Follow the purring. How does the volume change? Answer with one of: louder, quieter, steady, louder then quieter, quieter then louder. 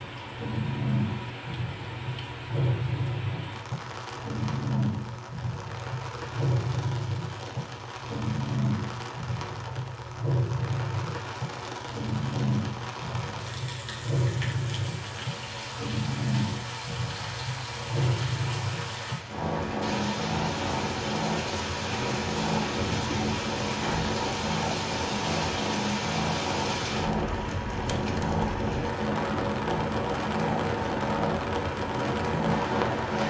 steady.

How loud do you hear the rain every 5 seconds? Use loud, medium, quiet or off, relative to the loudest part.
medium, medium, medium, medium, loud, loud, loud.